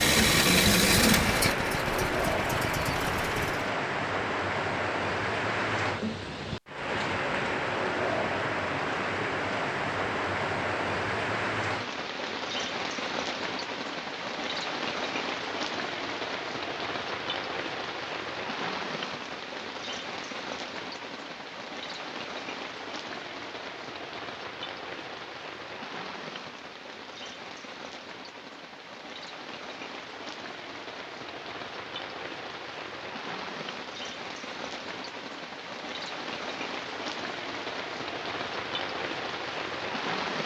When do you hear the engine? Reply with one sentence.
The engine can be heard from 0.0 to 3.7 s.